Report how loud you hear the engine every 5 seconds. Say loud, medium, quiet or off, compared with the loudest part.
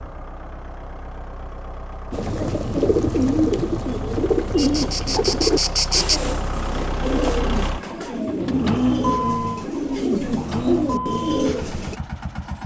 medium, loud, loud.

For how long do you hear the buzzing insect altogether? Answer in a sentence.
You can hear the buzzing insect for 2 seconds altogether.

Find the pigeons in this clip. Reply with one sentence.
The pigeons can be heard from 2.1 to 11.9 s.